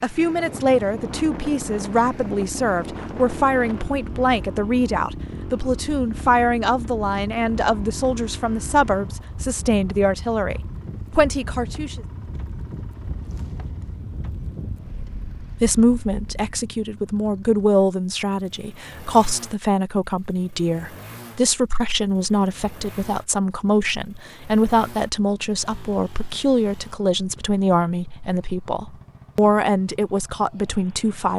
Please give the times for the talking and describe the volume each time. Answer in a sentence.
The talking can be heard from 0.0 to 12.0 s, at a steady volume; and from 15.6 to 31.3 s, at a steady volume.